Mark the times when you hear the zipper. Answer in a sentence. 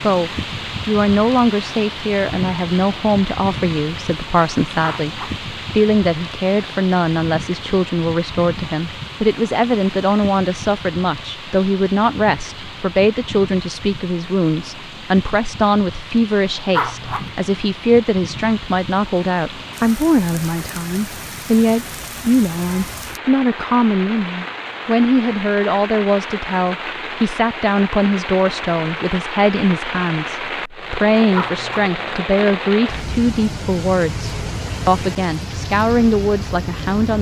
The zipper can be heard from 4.8 to 5.4 s, from 16.7 to 17.3 s and from 31.3 to 31.9 s.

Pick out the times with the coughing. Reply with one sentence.
The coughing can't be heard in this clip.